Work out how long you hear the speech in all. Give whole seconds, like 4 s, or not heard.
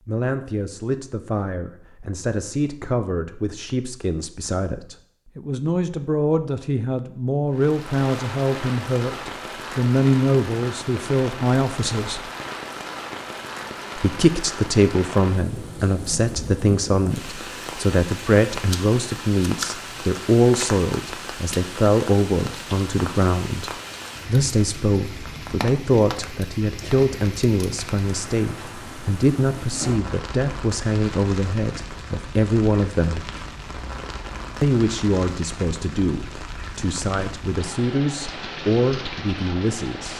37 s.